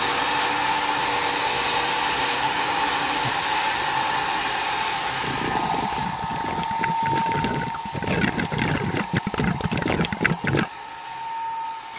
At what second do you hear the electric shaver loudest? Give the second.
2 s.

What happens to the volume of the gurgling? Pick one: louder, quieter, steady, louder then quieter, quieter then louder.
louder.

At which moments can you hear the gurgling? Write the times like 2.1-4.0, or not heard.
5.2-10.7.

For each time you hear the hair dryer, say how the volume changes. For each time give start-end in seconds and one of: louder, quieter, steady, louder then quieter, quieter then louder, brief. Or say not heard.
0.0-11.9 quieter.